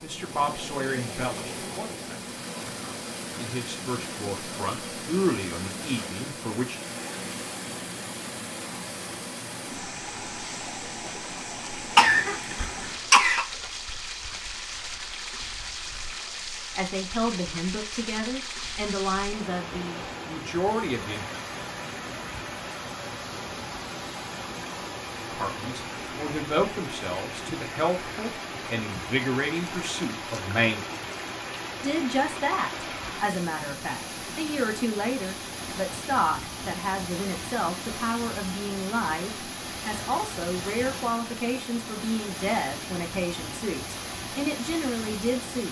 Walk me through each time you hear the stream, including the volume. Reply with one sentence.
The stream can be heard from 0.0 to 45.6 s, at a steady volume.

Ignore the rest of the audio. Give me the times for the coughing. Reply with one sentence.
You can hear the coughing from 11.9 to 13.4 s.